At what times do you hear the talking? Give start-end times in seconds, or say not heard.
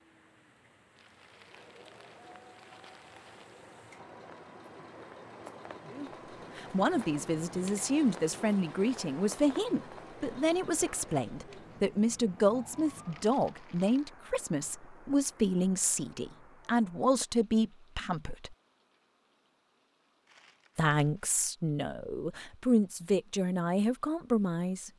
5.9-18.6, 20.8-24.9.